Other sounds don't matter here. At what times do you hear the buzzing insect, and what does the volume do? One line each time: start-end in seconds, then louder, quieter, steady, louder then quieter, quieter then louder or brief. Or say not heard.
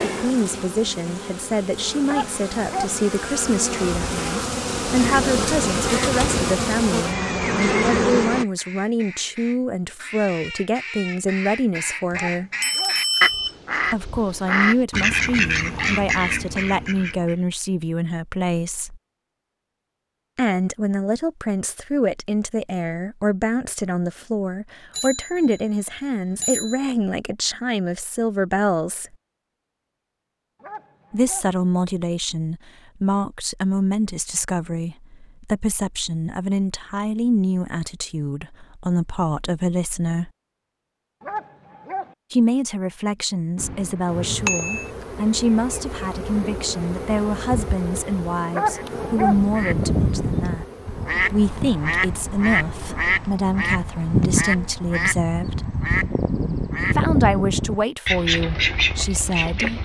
0.0-8.4 louder
44.0-54.9 quieter.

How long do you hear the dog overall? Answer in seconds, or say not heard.
5 s.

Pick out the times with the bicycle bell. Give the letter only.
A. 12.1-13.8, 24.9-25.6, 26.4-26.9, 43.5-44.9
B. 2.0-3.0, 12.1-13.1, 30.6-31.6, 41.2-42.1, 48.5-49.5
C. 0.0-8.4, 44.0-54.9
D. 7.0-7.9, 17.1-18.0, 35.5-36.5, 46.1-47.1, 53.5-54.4
A.